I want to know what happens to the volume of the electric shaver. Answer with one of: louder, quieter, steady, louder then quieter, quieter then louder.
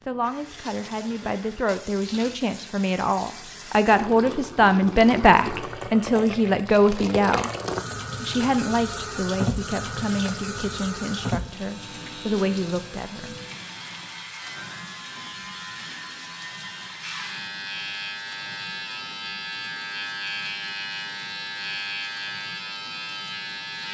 louder.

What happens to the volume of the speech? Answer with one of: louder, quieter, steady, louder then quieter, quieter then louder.
louder then quieter.